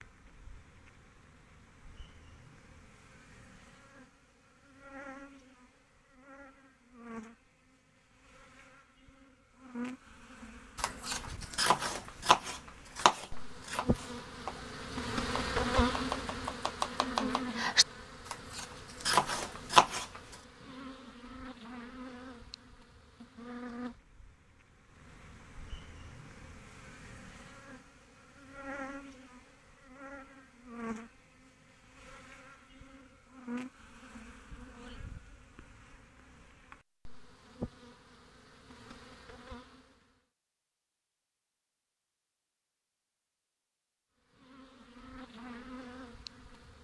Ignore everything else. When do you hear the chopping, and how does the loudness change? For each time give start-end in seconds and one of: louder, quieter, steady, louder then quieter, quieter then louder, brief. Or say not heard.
10.8-20.1 quieter then louder.